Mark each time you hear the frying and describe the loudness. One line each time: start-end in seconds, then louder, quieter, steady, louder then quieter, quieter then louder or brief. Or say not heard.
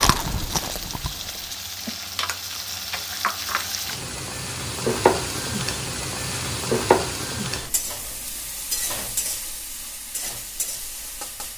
0.1-11.5 louder then quieter.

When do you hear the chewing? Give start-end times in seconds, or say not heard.
0.0-1.6.